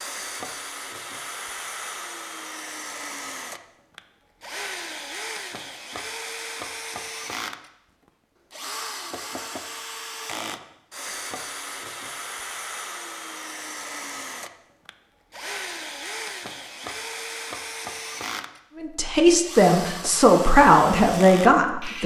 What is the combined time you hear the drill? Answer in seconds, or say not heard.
22 s.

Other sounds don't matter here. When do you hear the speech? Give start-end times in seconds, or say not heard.
18.8-22.0.